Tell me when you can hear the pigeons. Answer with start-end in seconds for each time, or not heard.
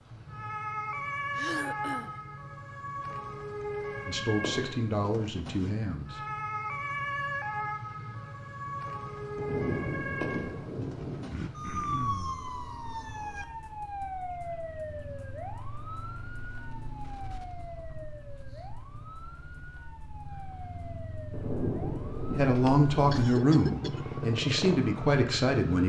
not heard.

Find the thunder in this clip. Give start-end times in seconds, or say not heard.
9.3-11.3, 21.3-23.1.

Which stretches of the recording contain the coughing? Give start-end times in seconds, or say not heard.
1.4-2.1, 11.3-12.4, 22.6-24.1.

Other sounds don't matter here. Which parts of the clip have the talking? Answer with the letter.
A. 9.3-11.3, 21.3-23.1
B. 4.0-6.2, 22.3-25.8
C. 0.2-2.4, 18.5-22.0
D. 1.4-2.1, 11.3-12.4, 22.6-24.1
B.